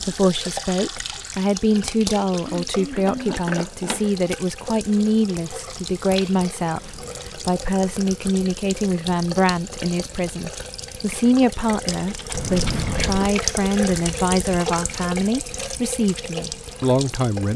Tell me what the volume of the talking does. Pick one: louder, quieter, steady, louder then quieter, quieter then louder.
steady.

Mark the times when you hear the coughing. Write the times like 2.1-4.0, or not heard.
2.5-3.4, 12.3-13.2.